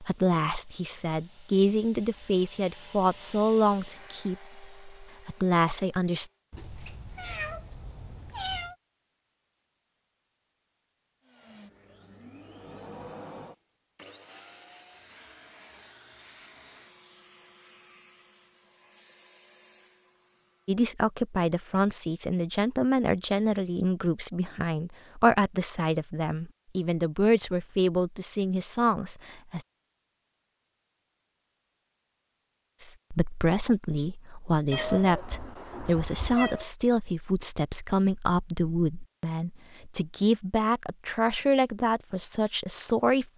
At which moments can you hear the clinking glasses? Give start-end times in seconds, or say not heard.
not heard.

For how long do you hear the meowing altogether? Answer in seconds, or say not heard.
4 s.